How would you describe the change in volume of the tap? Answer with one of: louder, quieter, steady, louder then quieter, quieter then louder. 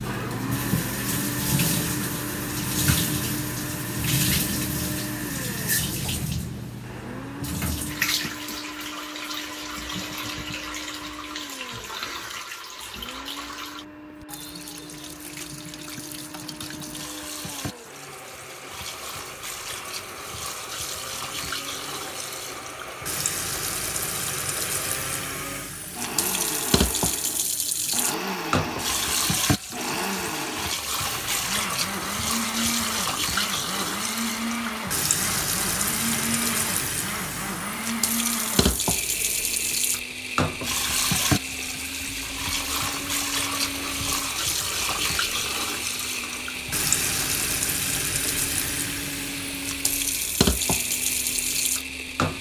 quieter then louder.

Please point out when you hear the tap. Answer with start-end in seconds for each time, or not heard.
0.0-52.3.